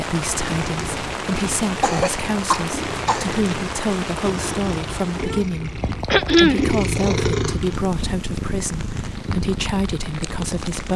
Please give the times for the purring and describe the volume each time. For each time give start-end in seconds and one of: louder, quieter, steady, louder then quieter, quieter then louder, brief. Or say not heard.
0.1-10.9 louder then quieter.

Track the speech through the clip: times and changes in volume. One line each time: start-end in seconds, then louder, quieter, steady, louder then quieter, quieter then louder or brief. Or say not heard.
0.0-10.9 steady.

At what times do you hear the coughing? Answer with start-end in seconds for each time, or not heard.
1.8-3.4, 6.1-6.7.